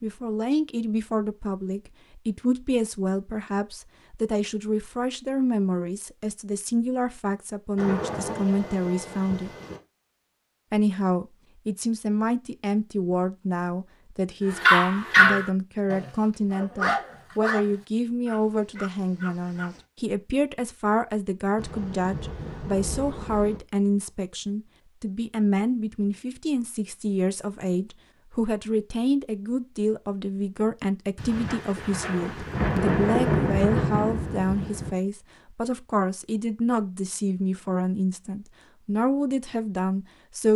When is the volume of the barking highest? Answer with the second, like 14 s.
15 s.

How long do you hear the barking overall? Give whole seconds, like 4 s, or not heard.
5 s.